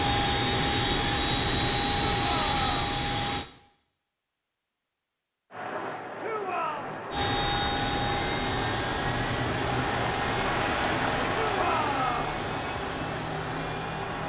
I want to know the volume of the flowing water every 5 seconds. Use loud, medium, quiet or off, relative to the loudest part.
off, loud, loud.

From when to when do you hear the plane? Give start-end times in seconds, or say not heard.
0.0-3.5, 7.1-14.2.